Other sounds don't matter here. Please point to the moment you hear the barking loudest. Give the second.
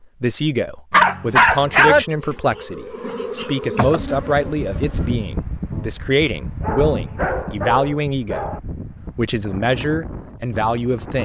2 s.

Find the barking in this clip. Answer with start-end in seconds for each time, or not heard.
0.9-2.0, 6.6-8.6.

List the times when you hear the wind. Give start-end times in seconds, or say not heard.
4.0-11.2.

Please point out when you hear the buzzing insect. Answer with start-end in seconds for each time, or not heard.
1.5-5.2.